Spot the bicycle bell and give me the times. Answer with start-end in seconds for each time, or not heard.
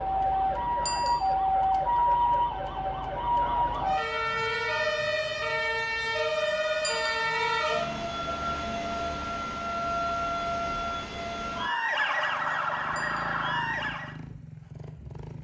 0.8-1.4, 6.8-7.3, 12.9-13.4.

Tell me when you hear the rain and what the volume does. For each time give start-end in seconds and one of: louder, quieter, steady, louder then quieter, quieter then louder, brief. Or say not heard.
not heard.